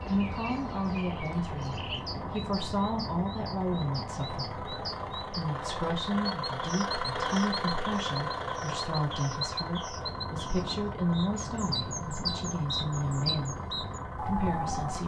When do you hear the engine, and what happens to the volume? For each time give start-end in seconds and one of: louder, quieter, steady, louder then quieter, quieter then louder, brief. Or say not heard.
0.0-15.0 louder then quieter.